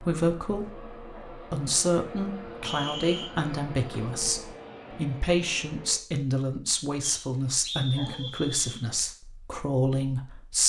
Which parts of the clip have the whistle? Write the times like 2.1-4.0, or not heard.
2.6-3.3, 7.0-8.8.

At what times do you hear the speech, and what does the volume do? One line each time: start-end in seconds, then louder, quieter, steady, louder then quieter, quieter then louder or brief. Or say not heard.
0.0-10.6 steady.